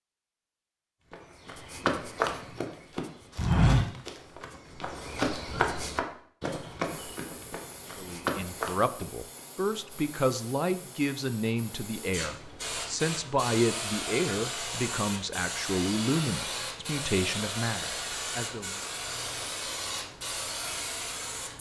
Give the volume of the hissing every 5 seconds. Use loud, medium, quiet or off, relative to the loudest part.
off, quiet, loud, loud, loud.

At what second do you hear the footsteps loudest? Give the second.
4 s.